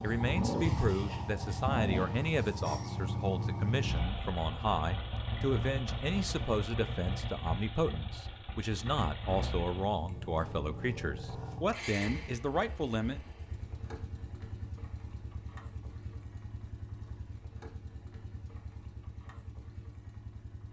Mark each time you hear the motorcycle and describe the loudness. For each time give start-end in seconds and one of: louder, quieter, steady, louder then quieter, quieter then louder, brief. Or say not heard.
0.0-20.6 quieter.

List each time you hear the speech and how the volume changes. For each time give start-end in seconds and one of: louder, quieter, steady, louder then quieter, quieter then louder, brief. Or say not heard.
0.0-13.2 steady.